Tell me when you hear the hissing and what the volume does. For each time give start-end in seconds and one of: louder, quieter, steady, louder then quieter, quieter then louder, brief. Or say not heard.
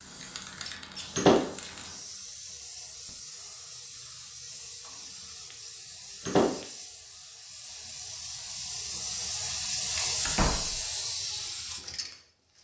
0.0-12.5 louder.